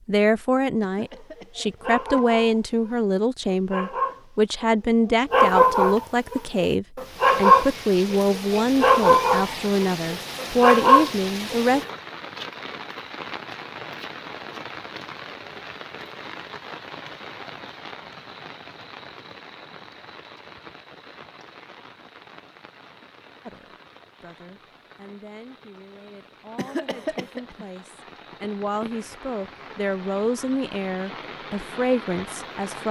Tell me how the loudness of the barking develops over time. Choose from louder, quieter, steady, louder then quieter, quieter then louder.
louder.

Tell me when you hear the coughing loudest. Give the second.
27 s.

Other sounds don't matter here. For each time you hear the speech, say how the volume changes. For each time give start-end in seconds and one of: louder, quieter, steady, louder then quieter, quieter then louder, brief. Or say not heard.
0.1-11.8 steady
23.4-32.8 louder.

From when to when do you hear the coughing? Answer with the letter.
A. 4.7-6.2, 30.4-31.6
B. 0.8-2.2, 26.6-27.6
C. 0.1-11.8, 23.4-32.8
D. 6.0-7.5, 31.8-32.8
B.